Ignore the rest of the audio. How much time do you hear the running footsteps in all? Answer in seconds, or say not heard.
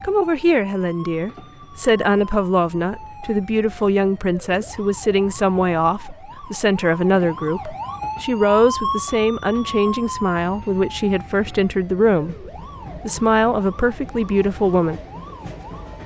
not heard.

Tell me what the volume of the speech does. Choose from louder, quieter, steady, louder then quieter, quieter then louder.
steady.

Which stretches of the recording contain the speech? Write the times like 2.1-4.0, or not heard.
0.0-15.0.